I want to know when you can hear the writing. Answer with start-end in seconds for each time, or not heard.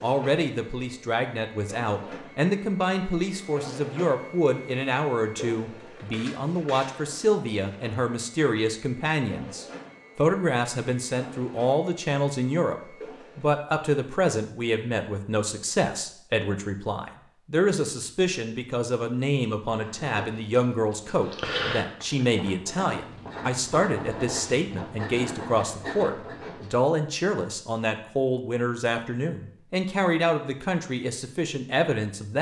19.7-26.8.